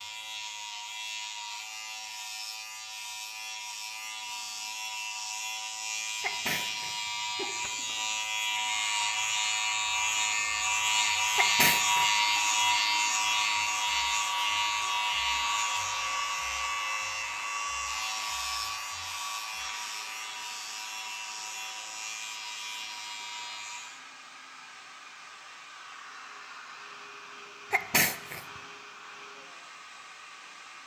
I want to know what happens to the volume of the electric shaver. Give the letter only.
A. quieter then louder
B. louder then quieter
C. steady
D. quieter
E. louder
B.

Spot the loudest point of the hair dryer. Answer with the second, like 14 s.
16 s.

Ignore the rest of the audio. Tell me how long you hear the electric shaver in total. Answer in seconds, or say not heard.
24 s.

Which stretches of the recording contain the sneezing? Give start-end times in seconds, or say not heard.
6.2-7.8, 11.3-12.1, 27.7-28.4.